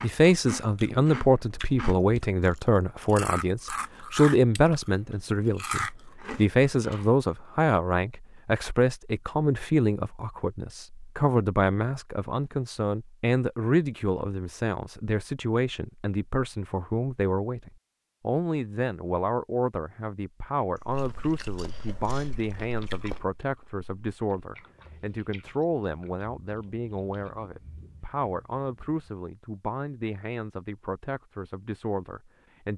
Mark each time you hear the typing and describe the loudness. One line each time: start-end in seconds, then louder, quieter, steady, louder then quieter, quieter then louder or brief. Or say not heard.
not heard.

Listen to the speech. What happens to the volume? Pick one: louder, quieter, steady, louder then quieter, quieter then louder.
quieter.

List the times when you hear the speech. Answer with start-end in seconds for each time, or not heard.
0.0-32.7.